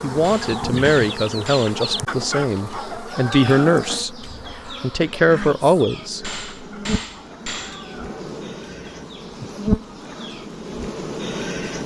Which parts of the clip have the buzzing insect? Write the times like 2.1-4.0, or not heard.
0.0-11.8.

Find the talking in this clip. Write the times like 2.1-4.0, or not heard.
0.0-6.4.